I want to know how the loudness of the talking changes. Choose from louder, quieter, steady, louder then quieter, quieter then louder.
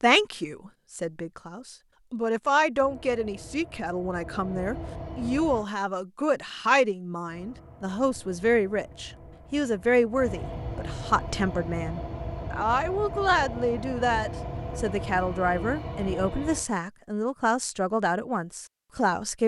steady.